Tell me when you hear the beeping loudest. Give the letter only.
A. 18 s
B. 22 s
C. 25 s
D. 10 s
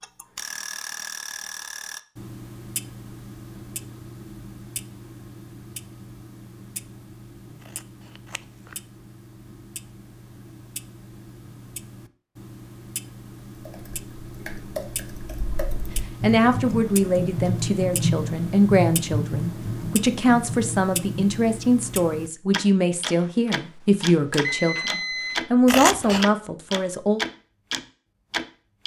C.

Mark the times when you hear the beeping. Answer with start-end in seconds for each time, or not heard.
23.2-25.4.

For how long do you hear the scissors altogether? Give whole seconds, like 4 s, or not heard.
2 s.